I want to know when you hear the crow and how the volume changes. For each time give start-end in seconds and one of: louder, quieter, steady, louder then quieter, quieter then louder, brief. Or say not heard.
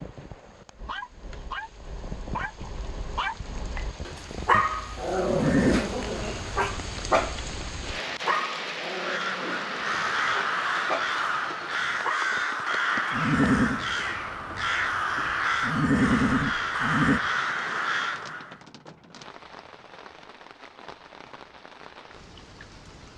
8.8-18.6 steady.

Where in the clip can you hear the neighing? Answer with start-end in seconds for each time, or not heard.
5.2-5.8, 13.1-13.8, 15.6-17.2.